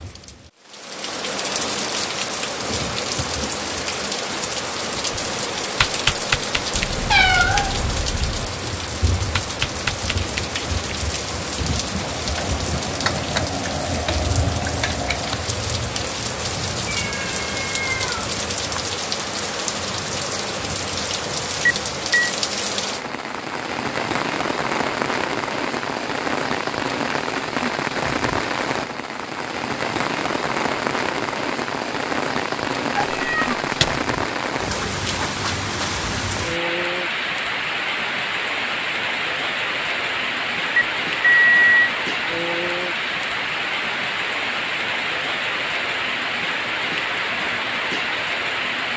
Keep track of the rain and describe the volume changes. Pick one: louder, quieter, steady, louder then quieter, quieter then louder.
steady.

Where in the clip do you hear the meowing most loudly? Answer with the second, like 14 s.
7 s.